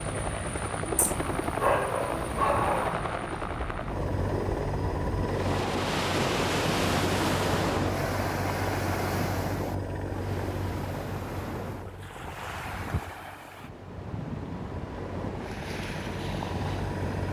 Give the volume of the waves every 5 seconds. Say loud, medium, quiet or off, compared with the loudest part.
medium, loud, medium, medium.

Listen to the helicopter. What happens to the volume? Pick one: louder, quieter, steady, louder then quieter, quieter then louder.
quieter.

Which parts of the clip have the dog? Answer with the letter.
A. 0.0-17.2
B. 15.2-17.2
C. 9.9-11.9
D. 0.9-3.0
D.